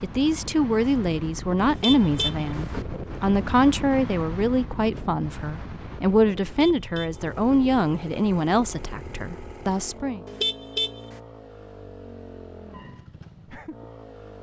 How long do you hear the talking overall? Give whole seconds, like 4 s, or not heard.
10 s.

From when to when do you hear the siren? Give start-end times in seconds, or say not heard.
not heard.